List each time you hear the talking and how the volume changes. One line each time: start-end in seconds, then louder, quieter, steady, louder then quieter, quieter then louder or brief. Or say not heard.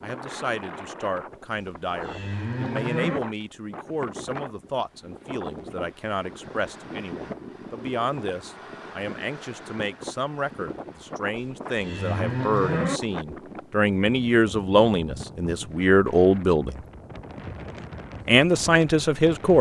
0.0-16.8 louder
18.2-19.5 brief.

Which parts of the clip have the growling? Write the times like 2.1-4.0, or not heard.
not heard.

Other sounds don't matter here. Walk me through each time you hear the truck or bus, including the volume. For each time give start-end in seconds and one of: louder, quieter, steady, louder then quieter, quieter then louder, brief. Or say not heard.
not heard.